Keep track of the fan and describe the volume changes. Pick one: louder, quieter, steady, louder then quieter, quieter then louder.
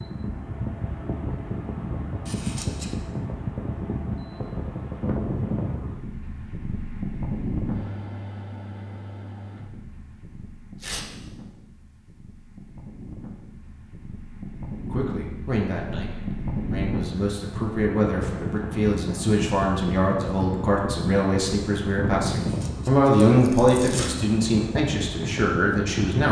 quieter then louder.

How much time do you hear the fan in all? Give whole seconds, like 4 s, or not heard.
26 s.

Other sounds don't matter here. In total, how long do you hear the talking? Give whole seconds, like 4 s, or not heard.
11 s.